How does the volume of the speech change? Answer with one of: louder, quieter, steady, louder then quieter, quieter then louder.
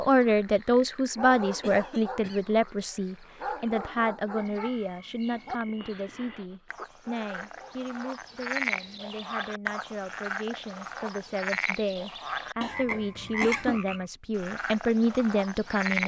quieter then louder.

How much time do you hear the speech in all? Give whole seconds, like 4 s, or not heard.
16 s.